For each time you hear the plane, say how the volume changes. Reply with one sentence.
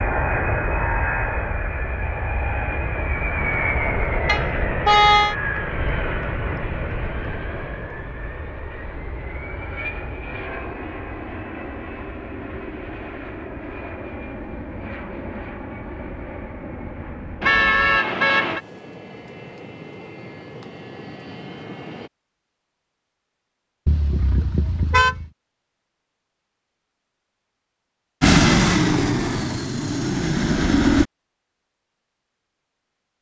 The plane can be heard from 0.0 to 22.1 s, getting quieter; and briefly from 28.2 to 31.1 s.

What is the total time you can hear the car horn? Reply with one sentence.
The car horn can be heard for 4 seconds in total.